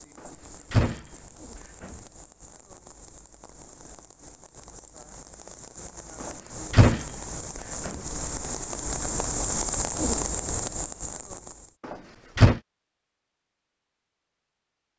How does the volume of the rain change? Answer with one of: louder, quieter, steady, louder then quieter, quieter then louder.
louder.